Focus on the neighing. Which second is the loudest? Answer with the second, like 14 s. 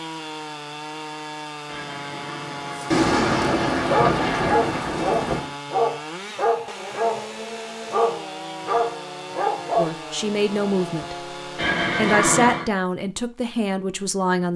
12 s.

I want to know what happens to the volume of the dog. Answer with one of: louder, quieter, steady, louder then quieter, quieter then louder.
steady.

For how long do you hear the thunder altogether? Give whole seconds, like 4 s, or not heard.
3 s.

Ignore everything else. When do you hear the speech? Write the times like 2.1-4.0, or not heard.
9.8-11.2, 11.9-14.5.